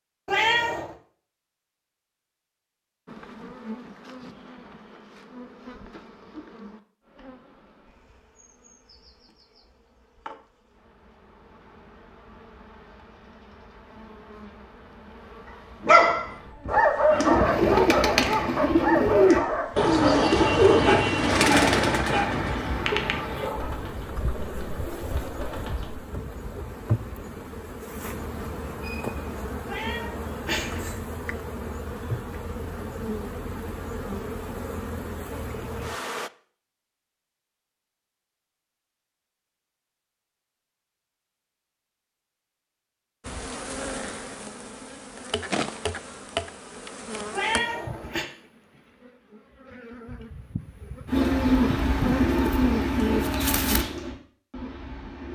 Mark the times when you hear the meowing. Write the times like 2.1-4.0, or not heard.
0.2-0.9, 29.6-31.0, 47.3-48.2.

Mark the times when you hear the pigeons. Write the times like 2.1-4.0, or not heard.
17.1-26.0, 51.0-55.2.